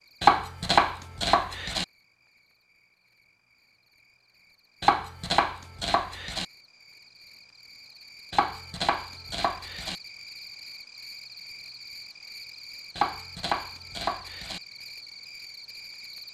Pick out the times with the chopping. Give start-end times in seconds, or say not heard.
0.2-1.9, 4.8-6.5, 8.3-9.9, 12.9-14.6.